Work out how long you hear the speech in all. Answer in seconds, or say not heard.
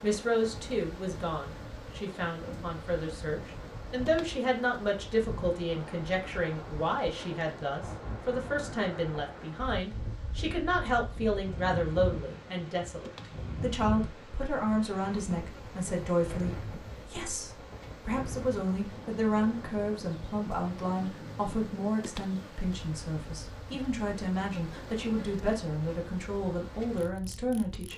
28 s.